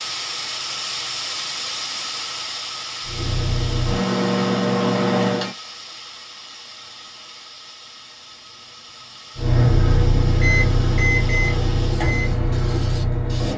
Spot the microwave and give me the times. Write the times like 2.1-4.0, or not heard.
3.0-5.5, 9.3-13.5.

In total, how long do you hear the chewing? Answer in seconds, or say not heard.
not heard.